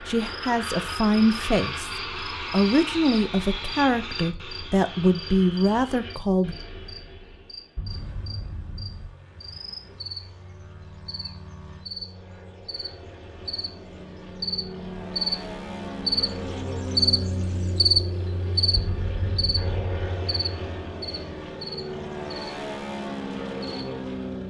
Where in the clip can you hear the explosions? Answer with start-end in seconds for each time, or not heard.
7.8-9.1, 18.8-20.0.